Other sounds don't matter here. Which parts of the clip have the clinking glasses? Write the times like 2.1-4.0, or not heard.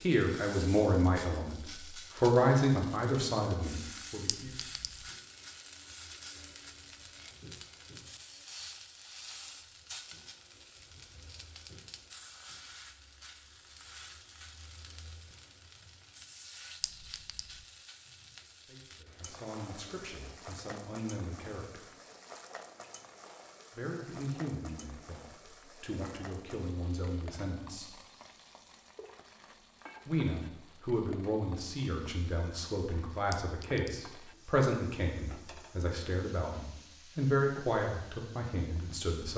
4.2-5.0, 16.8-17.6, 33.3-33.9.